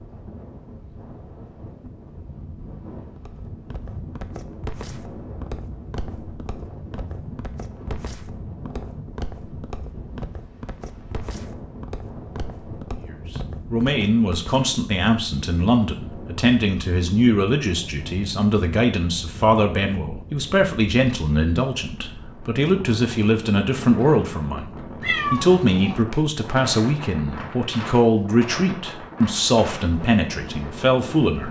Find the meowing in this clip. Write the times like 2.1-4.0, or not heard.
25.0-26.0.